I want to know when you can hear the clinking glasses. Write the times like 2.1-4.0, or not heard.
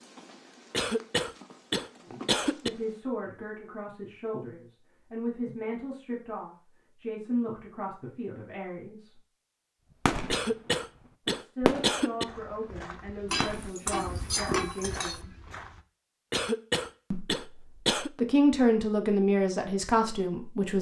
13.3-15.2.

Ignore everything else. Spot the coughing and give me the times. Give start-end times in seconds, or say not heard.
0.7-2.7, 10.3-12.2, 16.3-18.1.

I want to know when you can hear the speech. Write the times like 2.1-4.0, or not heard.
2.0-9.2, 11.2-15.3, 17.1-20.7.